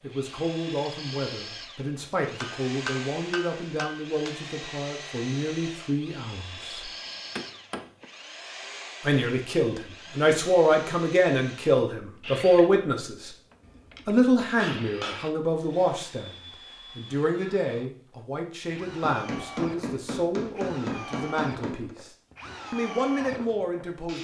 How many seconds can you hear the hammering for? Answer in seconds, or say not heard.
8 s.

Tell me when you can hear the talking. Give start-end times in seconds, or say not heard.
0.0-6.9, 9.0-13.3, 14.1-16.4, 16.9-22.1, 22.7-24.1.